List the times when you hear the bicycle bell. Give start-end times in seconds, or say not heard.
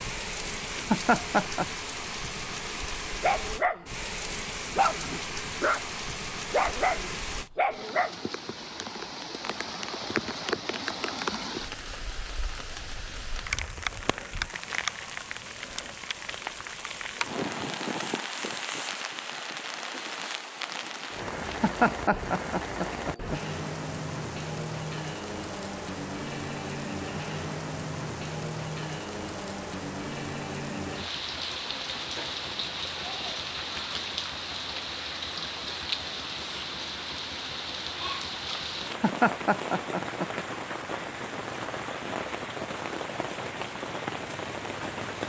not heard.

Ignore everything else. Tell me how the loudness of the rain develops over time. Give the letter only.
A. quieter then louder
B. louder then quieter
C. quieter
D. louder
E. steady
E.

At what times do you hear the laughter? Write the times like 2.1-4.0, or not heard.
0.7-1.6, 21.4-23.4, 38.9-40.3.